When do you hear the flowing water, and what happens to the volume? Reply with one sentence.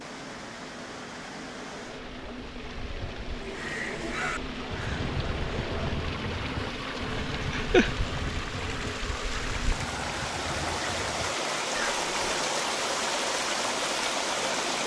You can hear the flowing water from 0.0 to 14.8 s, getting louder.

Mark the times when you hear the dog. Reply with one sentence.
You can't hear the dog here.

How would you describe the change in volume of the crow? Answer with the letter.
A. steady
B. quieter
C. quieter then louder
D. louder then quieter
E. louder
B.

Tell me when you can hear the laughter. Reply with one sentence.
You can hear the laughter from 7.3 to 7.9 s.